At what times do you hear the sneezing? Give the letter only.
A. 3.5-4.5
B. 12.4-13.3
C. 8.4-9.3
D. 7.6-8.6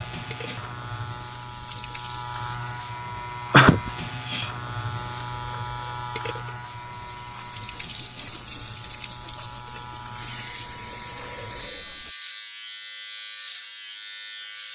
A.